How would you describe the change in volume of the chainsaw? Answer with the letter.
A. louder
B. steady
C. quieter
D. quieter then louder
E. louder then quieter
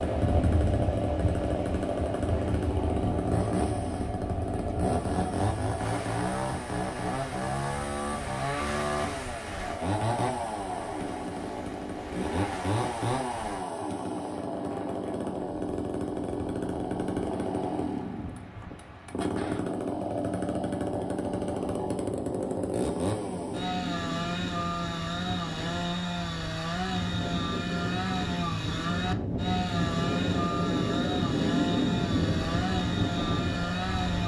B.